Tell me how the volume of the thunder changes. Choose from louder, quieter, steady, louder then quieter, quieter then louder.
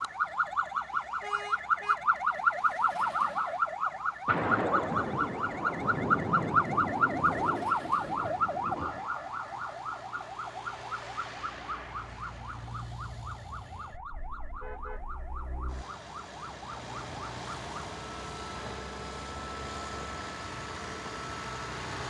quieter.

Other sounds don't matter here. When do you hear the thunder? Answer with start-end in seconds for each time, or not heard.
4.2-9.1.